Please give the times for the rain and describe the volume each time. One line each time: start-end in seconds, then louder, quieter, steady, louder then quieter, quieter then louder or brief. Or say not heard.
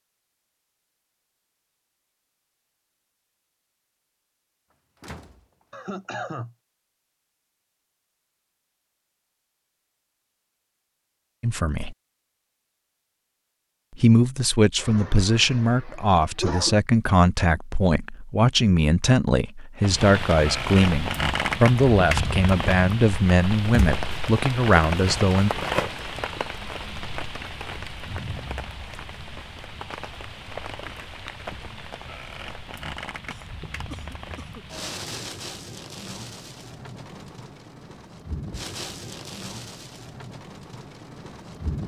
19.8-41.8 quieter.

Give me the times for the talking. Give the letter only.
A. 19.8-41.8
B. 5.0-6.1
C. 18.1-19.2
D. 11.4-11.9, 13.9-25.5
D.